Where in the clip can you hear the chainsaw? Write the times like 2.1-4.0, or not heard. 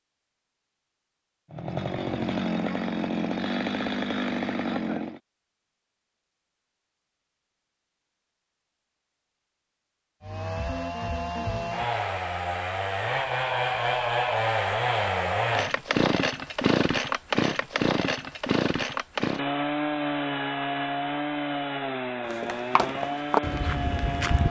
1.5-5.2, 10.2-24.4.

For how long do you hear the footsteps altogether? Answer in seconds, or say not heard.
2 s.